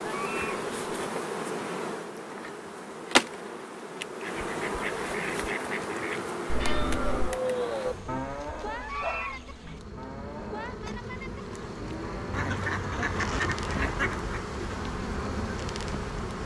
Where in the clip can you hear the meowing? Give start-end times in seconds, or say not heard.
6.5-7.4.